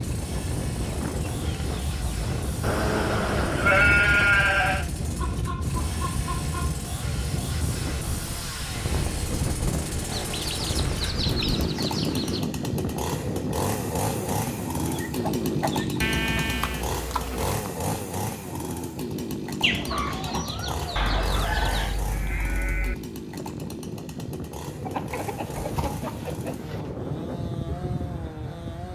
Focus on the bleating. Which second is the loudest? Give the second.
4 s.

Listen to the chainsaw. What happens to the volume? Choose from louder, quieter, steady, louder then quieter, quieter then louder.
louder then quieter.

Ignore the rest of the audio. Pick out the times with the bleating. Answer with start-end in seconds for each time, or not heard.
2.6-4.9, 16.0-17.7, 20.9-22.9.